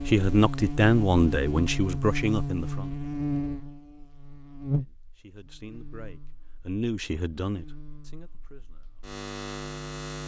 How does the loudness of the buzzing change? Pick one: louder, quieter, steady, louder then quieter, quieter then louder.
quieter then louder.